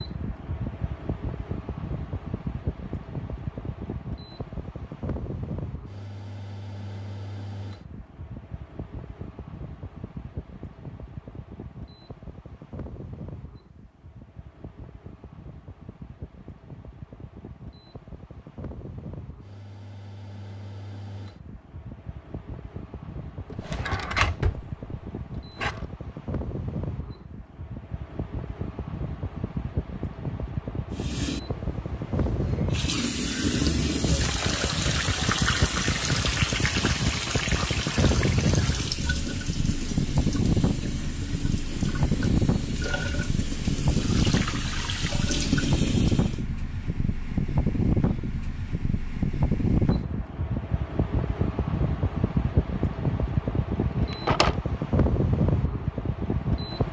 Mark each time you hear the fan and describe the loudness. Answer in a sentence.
You can hear the fan from 0.0 to 56.8 s, getting quieter then louder.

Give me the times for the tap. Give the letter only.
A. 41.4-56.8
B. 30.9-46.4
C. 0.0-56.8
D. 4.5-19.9
B.